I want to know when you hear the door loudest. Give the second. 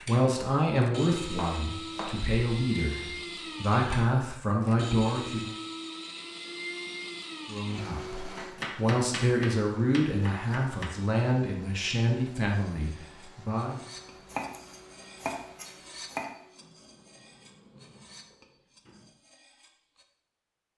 18 s.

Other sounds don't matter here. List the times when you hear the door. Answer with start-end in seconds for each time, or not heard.
16.6-19.2.